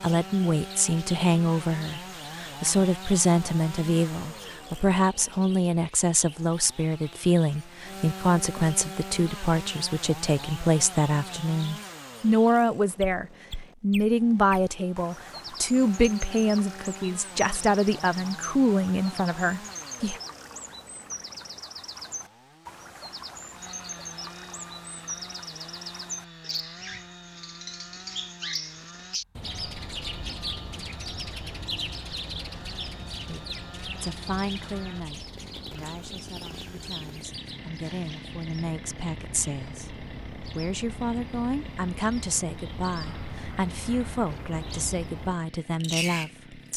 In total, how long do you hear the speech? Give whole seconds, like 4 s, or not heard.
34 s.